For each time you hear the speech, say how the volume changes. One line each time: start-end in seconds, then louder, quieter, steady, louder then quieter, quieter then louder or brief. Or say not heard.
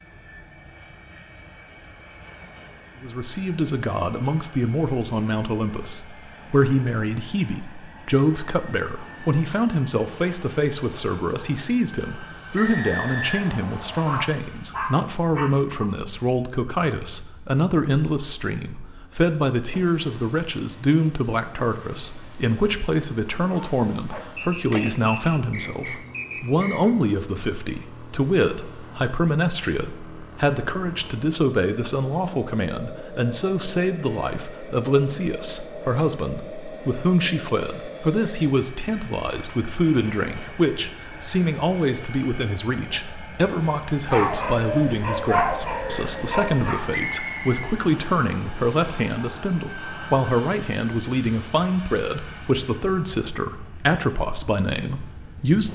3.0-55.7 steady.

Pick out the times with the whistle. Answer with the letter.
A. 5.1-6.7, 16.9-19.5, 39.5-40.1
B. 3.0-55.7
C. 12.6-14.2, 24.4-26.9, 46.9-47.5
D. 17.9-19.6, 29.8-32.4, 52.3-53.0
C.